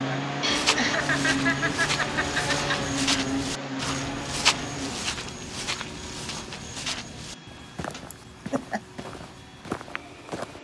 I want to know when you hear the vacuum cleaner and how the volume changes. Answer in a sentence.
The vacuum cleaner can be heard from 0.0 to 10.5 s, getting quieter.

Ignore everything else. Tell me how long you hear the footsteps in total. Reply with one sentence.
You can hear the footsteps for 10 seconds altogether.